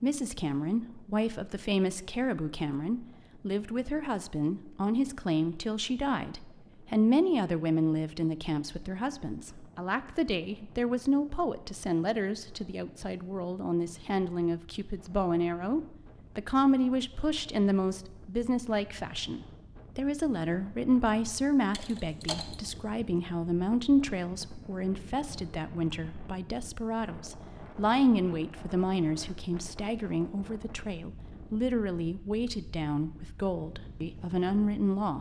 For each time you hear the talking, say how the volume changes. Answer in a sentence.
You can hear the talking from 0.0 to 35.1 s, at a steady volume.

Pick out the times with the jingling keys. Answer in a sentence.
The jingling keys can be heard from 21.7 to 22.7 s.